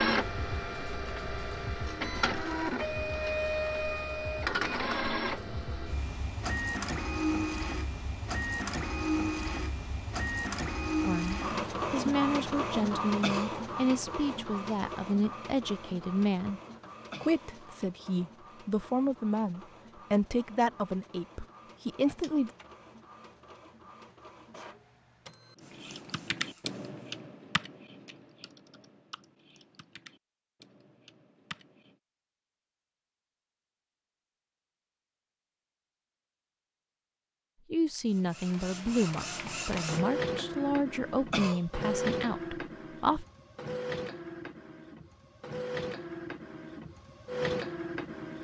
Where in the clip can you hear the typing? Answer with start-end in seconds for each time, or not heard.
25.6-31.9.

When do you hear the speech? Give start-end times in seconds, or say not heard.
11.1-16.6, 17.2-22.5, 37.7-43.2.